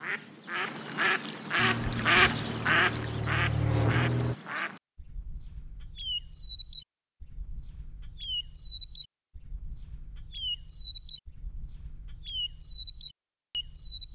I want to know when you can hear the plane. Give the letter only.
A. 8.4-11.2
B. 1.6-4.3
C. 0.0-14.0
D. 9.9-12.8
B.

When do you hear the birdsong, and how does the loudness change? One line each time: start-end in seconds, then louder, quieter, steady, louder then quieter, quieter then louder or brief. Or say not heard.
0.0-14.0 quieter.